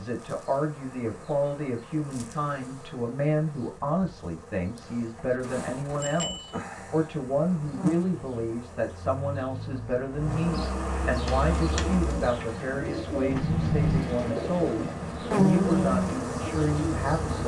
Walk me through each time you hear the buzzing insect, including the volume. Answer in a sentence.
You can hear the buzzing insect from 0.0 to 17.4 s, getting louder.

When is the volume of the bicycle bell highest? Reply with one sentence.
The volume of the bicycle bell peaks at 14 seconds.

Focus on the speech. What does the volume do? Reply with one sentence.
The volume of the speech stays about the same.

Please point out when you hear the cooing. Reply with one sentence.
The cooing can be heard from 11.2 to 17.4 s.